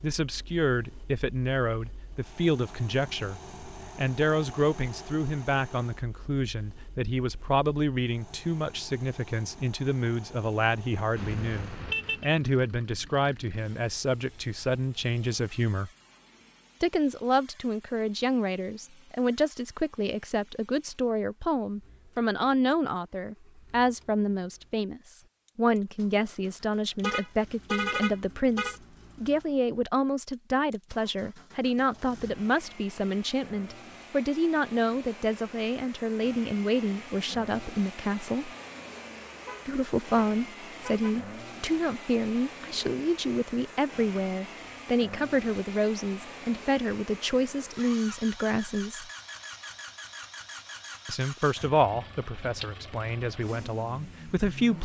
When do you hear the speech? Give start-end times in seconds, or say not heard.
0.0-15.9, 16.8-38.5, 39.6-49.0, 51.0-54.7.